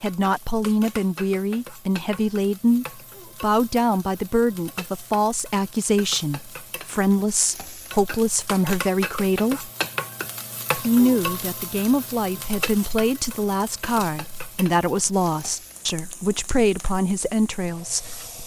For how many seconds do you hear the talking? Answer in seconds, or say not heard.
17 s.